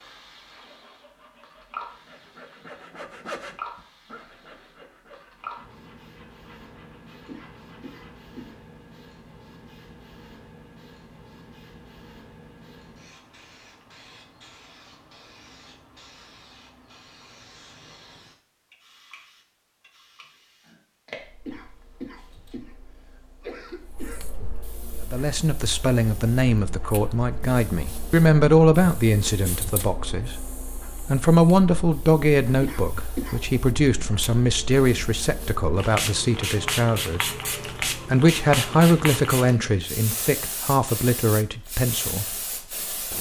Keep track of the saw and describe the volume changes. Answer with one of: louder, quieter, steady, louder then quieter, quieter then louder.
louder then quieter.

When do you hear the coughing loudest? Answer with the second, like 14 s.
33 s.